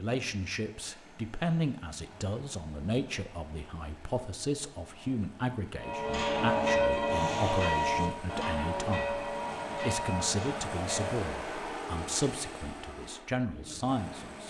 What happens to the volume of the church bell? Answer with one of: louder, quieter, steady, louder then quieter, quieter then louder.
quieter.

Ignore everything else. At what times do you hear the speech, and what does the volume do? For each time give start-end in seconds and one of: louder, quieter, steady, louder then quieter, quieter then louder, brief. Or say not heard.
0.0-14.4 steady.